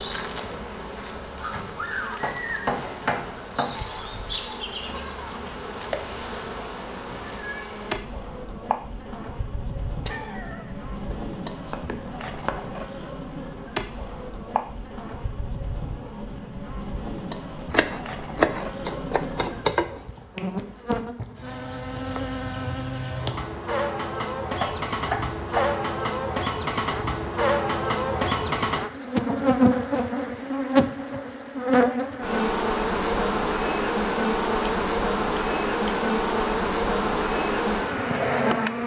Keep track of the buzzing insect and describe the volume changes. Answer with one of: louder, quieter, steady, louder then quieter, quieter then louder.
louder.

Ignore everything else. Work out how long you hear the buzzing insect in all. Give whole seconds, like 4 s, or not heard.
39 s.